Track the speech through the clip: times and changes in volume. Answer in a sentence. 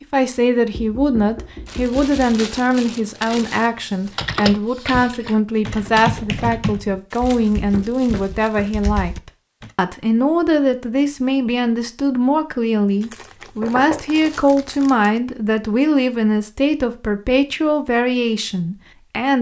You can hear the speech from 0.0 to 19.3 s, at a steady volume.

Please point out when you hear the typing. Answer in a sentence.
The typing can be heard from 4.2 to 9.7 s.